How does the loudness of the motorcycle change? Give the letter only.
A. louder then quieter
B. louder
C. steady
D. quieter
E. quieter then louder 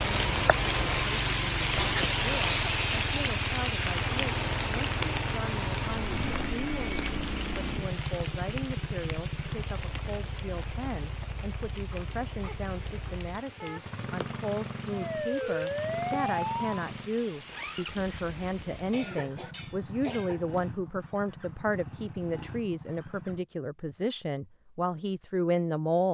D.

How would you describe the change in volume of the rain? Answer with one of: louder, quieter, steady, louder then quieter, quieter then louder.
quieter.